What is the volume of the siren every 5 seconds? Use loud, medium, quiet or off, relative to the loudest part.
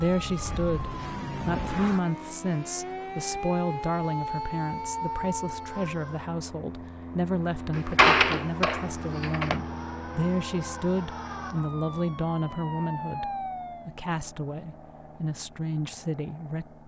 loud, loud, loud, off.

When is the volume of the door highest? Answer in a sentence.
The volume of the door peaks at 8 seconds.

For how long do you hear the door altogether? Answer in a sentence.
The door can be heard for 2 seconds in total.